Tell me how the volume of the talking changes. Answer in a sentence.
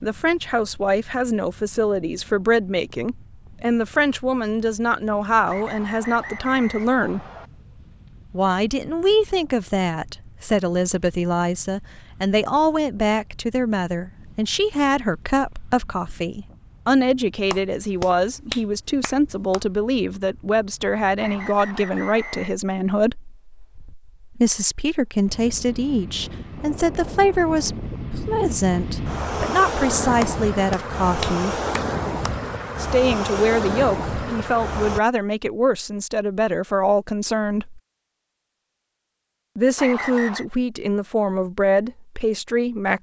The volume of the talking stays about the same.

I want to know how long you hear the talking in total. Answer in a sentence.
You can hear the talking for 38 seconds altogether.